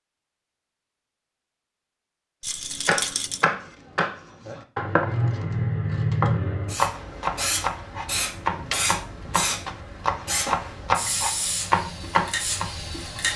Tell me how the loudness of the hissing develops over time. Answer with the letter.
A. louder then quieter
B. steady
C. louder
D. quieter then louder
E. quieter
B.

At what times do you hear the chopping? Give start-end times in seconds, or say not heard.
2.9-12.7.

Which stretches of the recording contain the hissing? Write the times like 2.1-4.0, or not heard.
6.7-13.3.